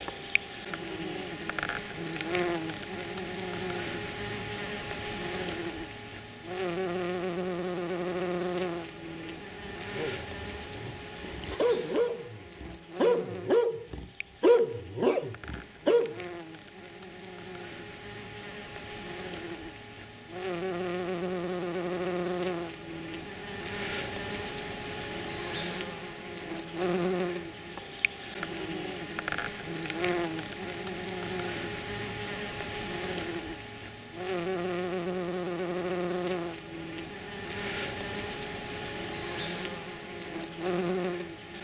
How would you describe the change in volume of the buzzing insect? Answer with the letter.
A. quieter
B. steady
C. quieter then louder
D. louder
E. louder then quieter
C.